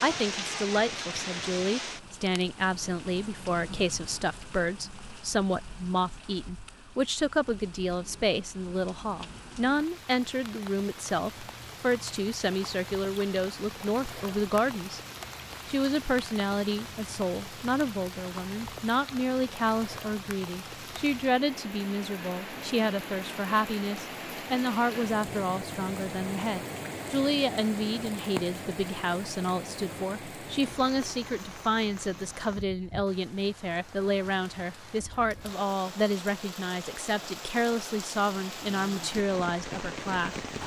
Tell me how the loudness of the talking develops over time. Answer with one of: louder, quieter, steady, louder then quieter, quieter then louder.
steady.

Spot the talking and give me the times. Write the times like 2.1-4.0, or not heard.
0.0-15.0, 15.7-40.4.